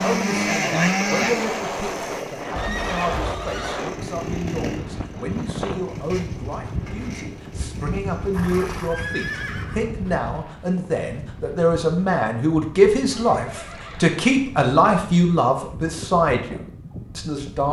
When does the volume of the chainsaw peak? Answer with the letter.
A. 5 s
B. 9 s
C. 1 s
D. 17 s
C.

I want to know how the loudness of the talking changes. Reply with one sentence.
The volume of the talking goes up.